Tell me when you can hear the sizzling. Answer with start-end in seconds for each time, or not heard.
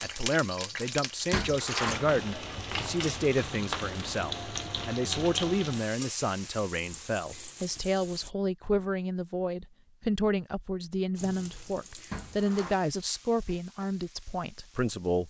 0.0-8.3, 11.2-15.2.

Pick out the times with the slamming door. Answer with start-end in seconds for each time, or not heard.
1.3-2.0, 12.1-12.8.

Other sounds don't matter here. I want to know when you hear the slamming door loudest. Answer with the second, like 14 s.
2 s.